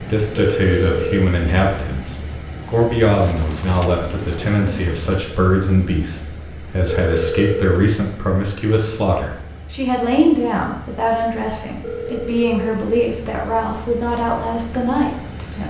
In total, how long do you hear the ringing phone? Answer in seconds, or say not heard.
3 s.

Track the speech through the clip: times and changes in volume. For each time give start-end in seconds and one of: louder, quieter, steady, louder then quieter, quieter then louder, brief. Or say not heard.
0.0-15.6 steady.